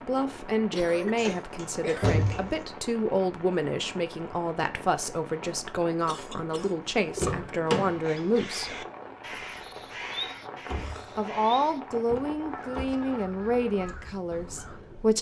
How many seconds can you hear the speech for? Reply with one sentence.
You can hear the speech for 13 seconds altogether.